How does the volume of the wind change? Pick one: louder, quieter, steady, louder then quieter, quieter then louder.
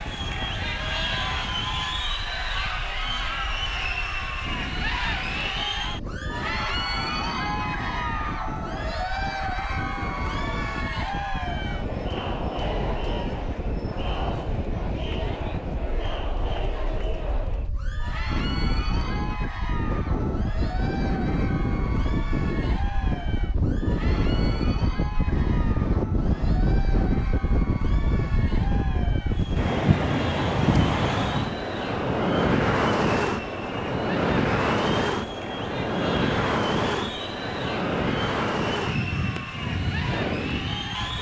louder.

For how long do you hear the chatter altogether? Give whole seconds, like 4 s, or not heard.
41 s.